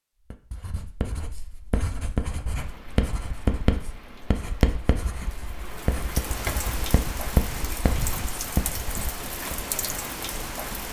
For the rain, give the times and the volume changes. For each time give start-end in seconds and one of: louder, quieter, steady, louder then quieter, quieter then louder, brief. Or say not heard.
2.5-10.8 louder.